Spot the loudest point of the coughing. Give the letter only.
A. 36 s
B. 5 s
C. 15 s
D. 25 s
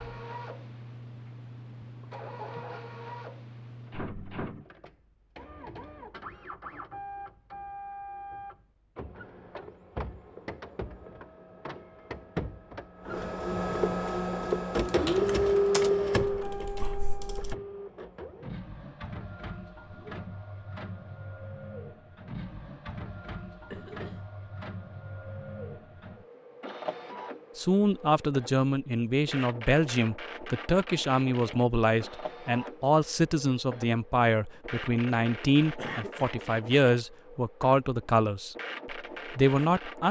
A.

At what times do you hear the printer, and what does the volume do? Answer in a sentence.
The printer can be heard from 0.0 to 40.0 s, getting louder then quieter.